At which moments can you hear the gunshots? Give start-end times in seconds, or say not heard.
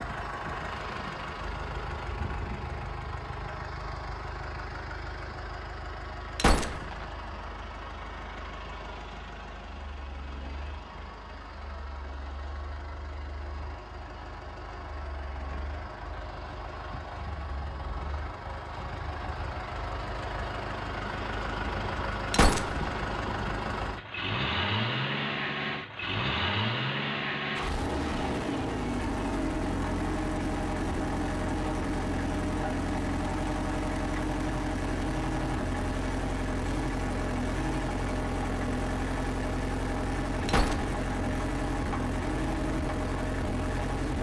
6.3-7.0, 22.3-23.0, 40.5-41.0.